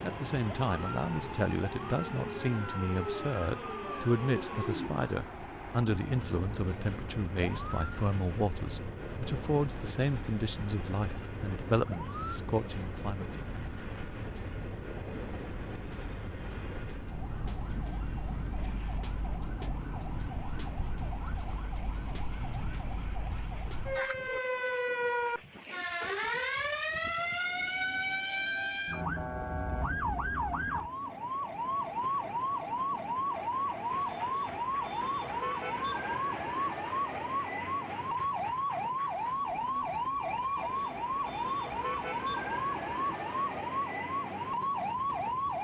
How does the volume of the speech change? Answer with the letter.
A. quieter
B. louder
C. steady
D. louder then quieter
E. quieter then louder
C.